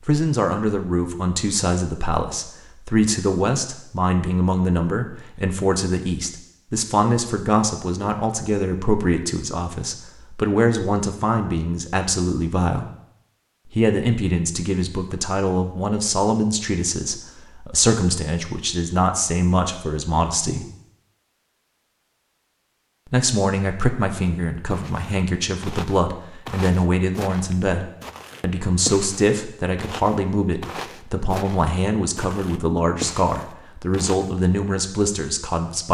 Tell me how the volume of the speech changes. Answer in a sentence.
The volume of the speech stays about the same.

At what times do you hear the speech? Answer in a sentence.
The speech can be heard from 0.1 to 12.9 s, from 13.7 to 20.6 s and from 23.1 to 35.8 s.